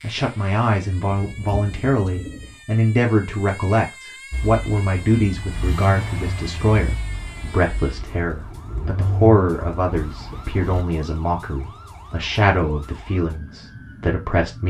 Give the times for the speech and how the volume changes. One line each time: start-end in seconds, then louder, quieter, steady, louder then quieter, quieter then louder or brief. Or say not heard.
0.0-14.6 steady.